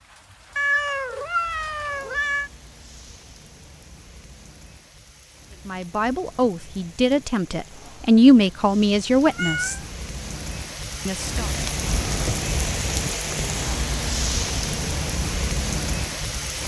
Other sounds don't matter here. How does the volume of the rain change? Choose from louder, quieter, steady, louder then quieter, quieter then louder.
louder.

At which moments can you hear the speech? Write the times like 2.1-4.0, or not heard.
5.7-9.8, 11.1-11.5.